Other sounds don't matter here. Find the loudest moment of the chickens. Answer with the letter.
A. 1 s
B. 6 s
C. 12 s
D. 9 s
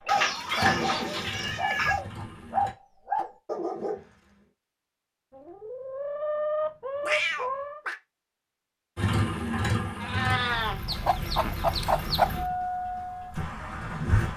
C.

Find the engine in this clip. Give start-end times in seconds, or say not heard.
0.0-2.8, 8.9-14.3.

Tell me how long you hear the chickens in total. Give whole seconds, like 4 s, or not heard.
6 s.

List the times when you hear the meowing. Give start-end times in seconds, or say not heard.
0.1-1.9, 7.0-8.0, 9.9-10.8.